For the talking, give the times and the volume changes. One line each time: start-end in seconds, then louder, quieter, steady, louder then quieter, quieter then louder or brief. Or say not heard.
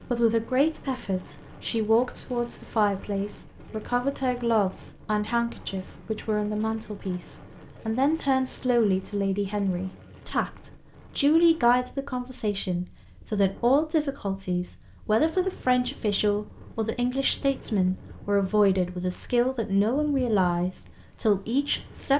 0.1-22.1 steady.